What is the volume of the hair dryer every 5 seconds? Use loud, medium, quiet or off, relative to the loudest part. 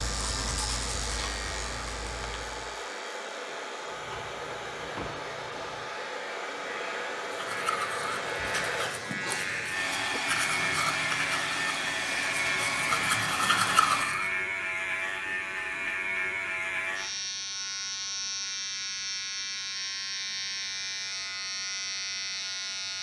medium, loud, loud, off, off.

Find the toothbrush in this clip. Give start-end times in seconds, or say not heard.
0.0-2.8, 7.2-14.4.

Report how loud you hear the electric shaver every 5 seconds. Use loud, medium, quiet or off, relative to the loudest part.
medium, medium, loud, loud, loud.